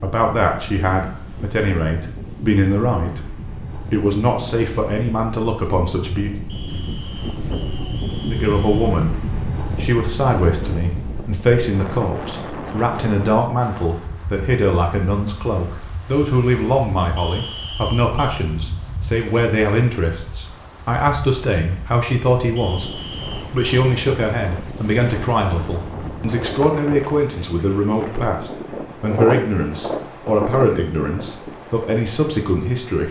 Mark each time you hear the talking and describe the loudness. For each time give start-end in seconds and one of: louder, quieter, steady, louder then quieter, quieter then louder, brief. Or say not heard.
0.0-6.3 steady
8.3-33.0 steady.